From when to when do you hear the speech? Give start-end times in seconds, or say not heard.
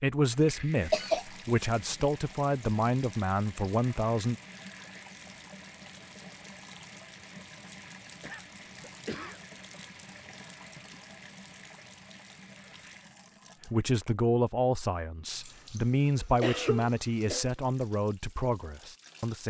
0.0-4.3, 13.7-19.4.